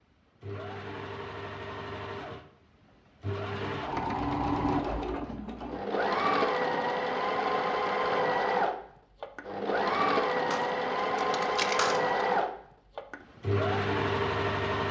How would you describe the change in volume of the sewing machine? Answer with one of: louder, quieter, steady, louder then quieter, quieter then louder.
louder.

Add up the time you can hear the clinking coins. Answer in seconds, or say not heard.
2 s.